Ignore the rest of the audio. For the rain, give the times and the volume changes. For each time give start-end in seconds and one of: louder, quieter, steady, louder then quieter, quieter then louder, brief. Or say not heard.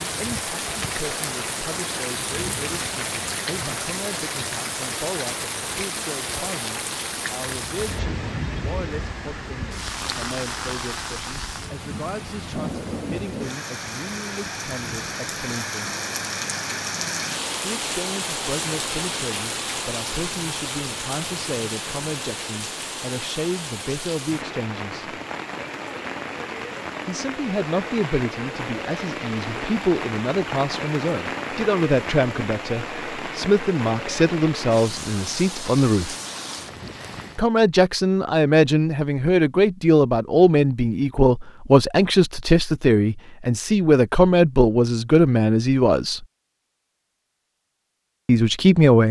0.0-37.4 steady.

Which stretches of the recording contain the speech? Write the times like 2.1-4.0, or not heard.
0.0-15.9, 17.6-25.1, 27.1-36.1, 37.4-46.2, 48.2-49.0.